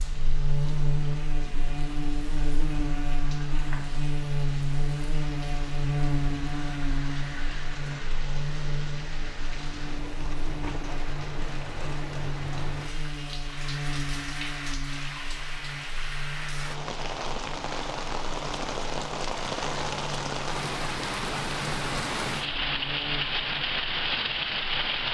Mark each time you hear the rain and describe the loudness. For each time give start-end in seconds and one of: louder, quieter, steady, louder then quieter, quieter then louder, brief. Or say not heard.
0.0-25.0 louder.